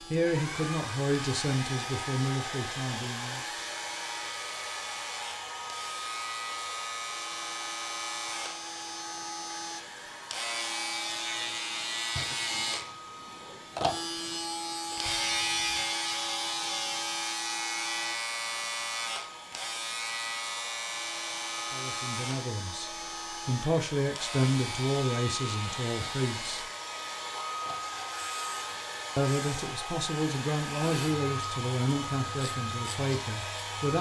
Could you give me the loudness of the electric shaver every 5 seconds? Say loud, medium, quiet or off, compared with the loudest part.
medium, medium, loud, loud, medium, medium, medium.